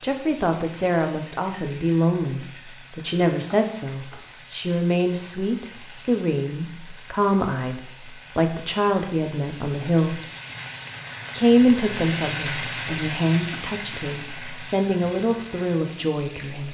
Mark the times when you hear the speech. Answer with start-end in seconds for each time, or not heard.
0.0-10.2, 11.3-16.6.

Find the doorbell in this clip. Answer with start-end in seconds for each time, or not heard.
not heard.